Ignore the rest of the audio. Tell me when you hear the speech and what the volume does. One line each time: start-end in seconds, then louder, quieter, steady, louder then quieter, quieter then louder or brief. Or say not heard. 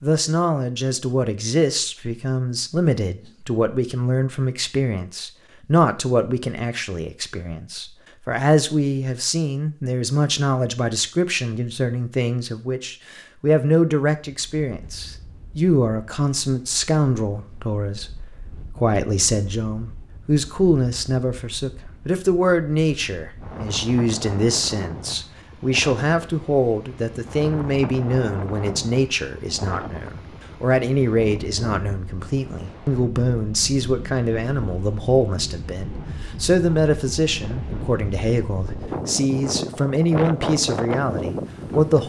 0.0-42.0 steady.